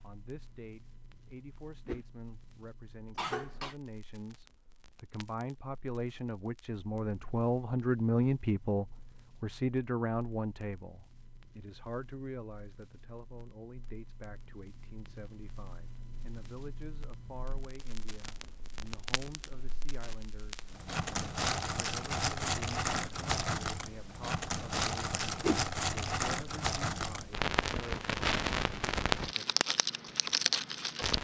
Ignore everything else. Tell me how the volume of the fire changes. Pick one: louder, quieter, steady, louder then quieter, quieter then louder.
louder.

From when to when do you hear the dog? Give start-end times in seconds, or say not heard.
not heard.